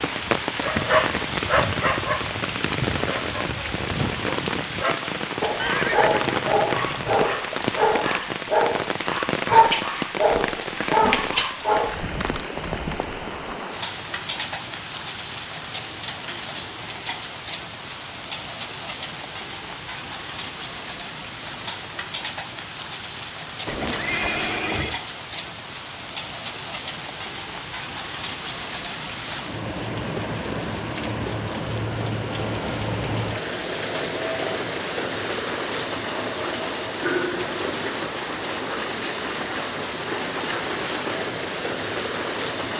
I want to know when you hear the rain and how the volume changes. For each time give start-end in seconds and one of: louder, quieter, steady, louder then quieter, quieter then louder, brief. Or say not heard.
0.0-42.7 quieter then louder.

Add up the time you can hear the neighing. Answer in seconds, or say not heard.
3 s.